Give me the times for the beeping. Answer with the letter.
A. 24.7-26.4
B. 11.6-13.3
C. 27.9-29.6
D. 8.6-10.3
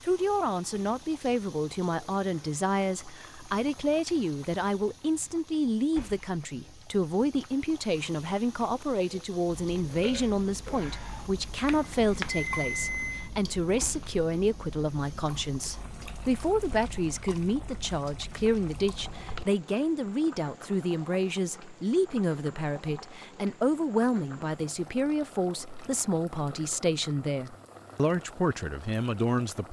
B.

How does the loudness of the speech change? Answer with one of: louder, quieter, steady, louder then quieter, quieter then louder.
steady.